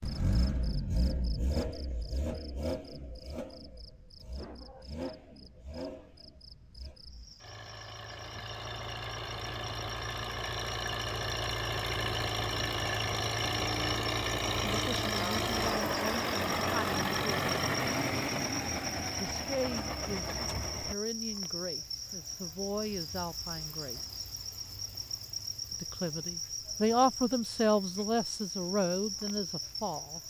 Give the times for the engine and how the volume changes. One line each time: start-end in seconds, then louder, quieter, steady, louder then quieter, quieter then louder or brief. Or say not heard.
0.0-20.9 quieter then louder.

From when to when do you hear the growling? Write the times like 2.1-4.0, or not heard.
not heard.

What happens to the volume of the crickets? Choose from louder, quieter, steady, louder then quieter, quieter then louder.
louder.